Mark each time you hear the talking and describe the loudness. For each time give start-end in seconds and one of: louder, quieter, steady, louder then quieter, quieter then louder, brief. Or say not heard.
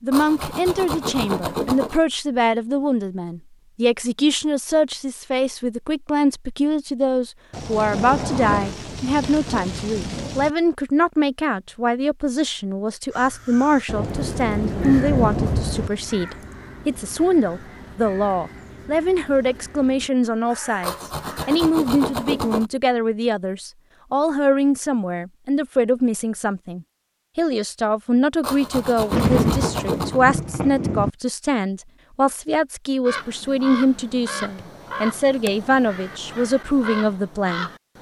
0.0-37.7 steady.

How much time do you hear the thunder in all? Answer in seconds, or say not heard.
7 s.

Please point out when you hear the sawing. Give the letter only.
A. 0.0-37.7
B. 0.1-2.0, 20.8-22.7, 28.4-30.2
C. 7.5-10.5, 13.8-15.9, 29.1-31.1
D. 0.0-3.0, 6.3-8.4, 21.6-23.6
B.